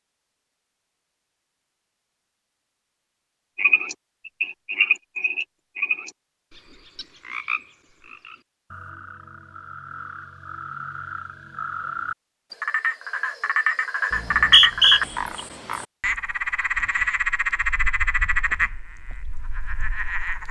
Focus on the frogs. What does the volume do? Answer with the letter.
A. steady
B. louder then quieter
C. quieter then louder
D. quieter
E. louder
C.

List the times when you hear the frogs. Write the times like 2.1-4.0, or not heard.
3.5-20.4.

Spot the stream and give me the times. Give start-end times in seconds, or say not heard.
not heard.